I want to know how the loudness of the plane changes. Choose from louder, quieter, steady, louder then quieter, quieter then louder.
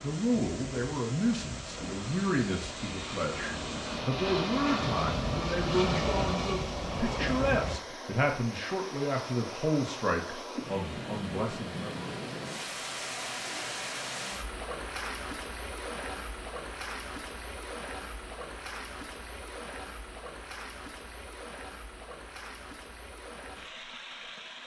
louder.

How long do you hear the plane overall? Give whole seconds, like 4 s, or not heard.
8 s.